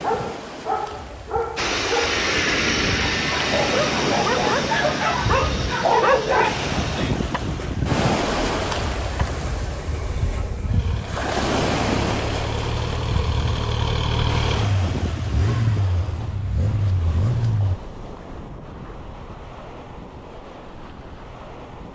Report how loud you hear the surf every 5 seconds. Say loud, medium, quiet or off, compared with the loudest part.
medium, loud, loud, medium, quiet.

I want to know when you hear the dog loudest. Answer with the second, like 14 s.
6 s.